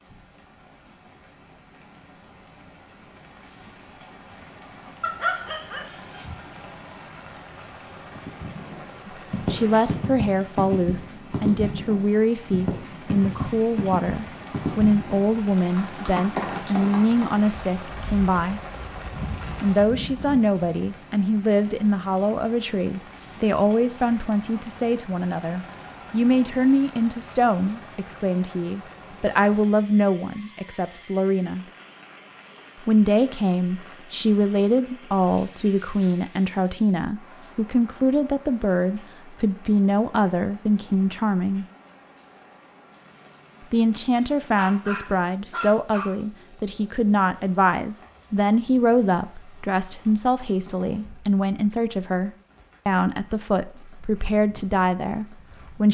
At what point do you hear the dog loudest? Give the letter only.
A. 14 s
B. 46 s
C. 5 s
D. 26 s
C.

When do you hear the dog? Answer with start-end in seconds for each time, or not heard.
5.0-6.5, 44.1-46.1.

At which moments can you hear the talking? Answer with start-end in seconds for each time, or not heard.
9.1-18.6, 19.6-31.6, 32.8-41.6, 43.7-55.9.